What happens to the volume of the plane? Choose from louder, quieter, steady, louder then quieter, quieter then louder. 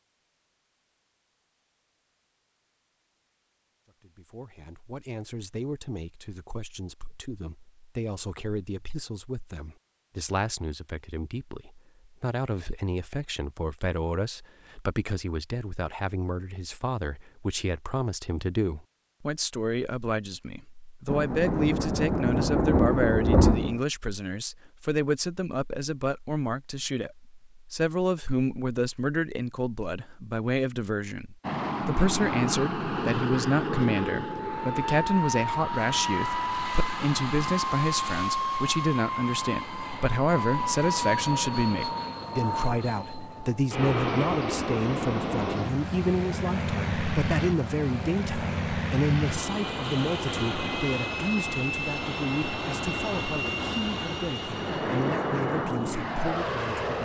steady.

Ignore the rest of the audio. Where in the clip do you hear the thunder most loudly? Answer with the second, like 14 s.
23 s.